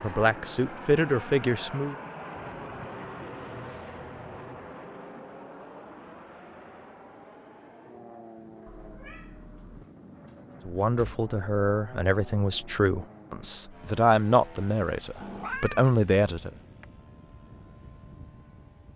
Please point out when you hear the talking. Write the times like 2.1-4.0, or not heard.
0.0-1.9, 10.7-16.5.